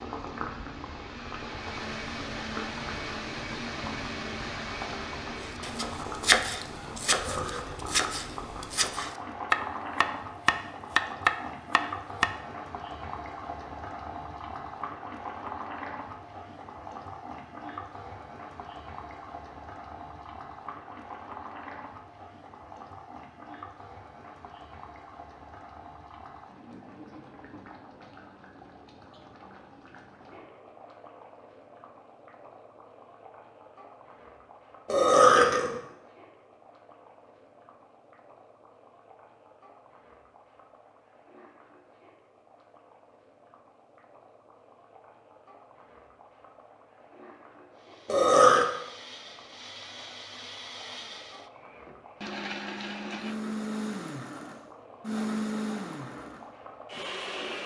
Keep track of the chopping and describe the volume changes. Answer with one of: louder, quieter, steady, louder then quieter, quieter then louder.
quieter then louder.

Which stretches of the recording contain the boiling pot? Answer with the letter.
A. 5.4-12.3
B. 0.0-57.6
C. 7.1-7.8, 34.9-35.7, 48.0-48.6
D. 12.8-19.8
B.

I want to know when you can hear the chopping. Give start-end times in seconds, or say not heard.
5.4-12.3.